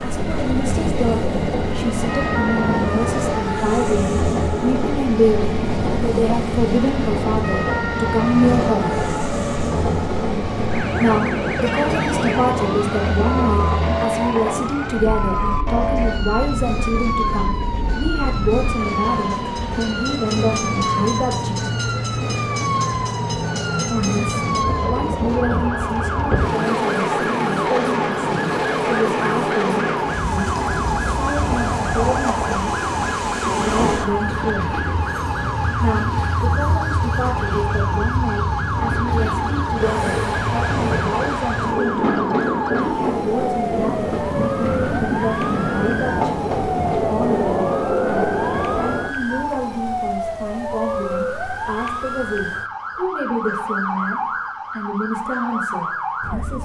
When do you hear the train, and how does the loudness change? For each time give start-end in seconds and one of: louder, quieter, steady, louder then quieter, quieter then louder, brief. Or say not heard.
0.0-49.1 steady.